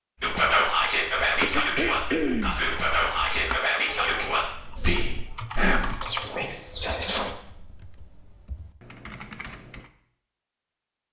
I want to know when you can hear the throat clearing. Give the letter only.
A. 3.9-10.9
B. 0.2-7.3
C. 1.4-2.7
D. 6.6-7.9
C.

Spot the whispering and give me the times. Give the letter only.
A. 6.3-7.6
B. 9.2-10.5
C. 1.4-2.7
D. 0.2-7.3
D.